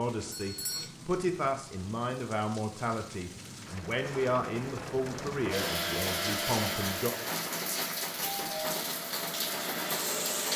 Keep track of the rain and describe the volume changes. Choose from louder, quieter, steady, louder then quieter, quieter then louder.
louder.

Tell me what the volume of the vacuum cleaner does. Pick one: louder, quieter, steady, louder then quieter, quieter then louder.
quieter then louder.